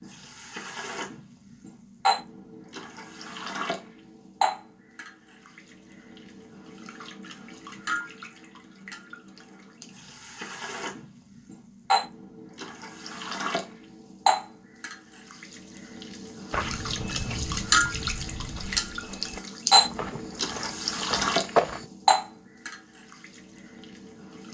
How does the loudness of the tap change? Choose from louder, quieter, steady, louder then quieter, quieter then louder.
quieter then louder.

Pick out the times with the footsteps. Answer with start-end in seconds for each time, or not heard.
16.5-21.9.